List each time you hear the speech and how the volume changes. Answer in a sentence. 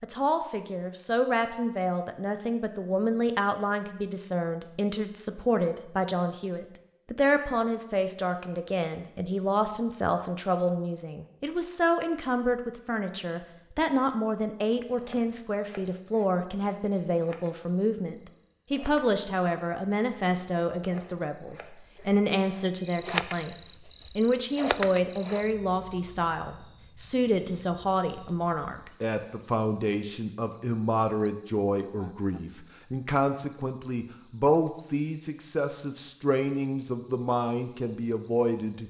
You can hear the speech from 0.0 to 38.8 s, at a steady volume.